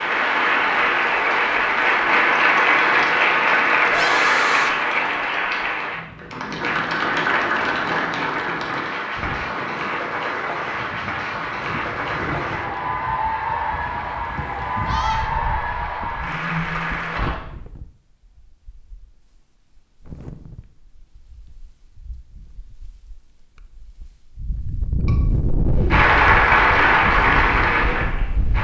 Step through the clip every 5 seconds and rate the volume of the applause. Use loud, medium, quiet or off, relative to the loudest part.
loud, medium, medium, medium, off, loud.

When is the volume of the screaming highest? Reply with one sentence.
The volume of the screaming peaks at 4 seconds.